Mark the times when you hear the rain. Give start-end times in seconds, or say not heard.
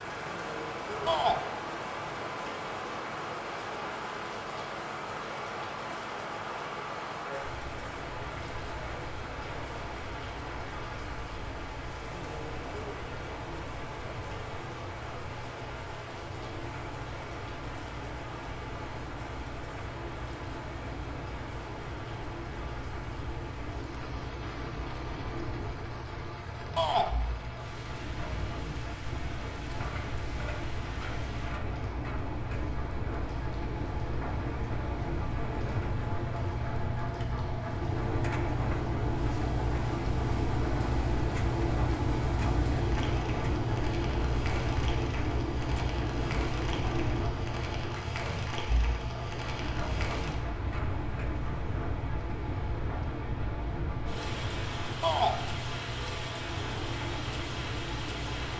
0.0-58.5.